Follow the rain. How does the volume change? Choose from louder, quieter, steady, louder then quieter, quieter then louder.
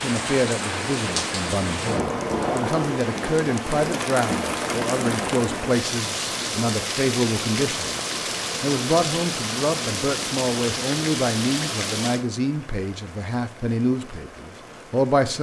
quieter.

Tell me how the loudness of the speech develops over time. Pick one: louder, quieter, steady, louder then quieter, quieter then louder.
steady.